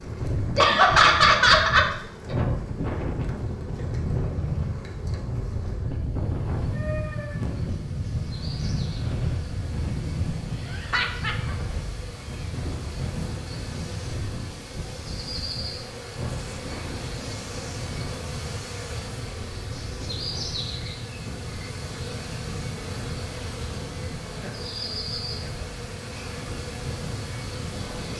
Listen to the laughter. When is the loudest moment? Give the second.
1 s.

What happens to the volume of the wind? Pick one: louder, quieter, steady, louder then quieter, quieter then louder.
quieter.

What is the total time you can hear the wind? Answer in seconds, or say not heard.
28 s.